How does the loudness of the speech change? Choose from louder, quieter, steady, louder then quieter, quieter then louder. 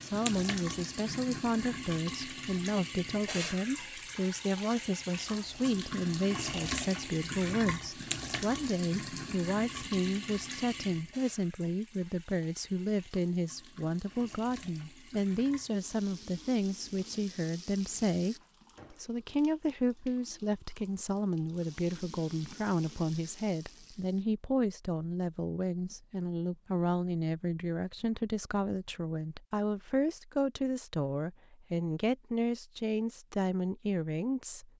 steady.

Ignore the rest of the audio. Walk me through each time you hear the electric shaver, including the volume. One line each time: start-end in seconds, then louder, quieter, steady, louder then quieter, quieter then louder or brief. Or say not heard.
not heard.